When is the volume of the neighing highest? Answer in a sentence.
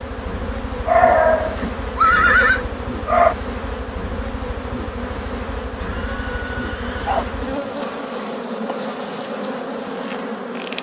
The loudest moment of the neighing is at 2 seconds.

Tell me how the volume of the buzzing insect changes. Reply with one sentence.
The volume of the buzzing insect stays about the same.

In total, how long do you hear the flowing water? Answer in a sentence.
You can't hear the flowing water here.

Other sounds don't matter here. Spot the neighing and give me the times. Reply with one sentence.
The neighing can be heard from 1.6 to 2.6 s and from 5.8 to 7.2 s.